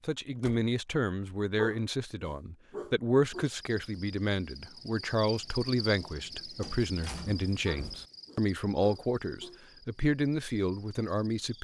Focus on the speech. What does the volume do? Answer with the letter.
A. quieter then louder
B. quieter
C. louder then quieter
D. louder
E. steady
E.